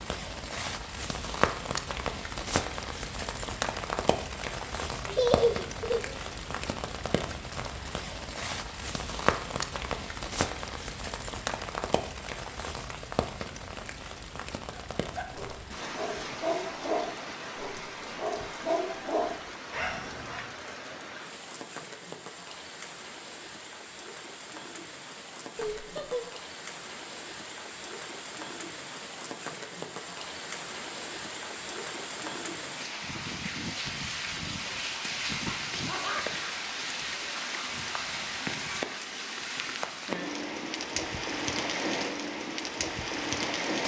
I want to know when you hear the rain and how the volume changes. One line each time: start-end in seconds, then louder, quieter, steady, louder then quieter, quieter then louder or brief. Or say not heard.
0.0-43.8 quieter then louder.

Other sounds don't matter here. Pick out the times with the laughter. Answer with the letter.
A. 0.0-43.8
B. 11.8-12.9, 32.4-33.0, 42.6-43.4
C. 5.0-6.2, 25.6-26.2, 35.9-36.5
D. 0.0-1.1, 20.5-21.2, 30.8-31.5
C.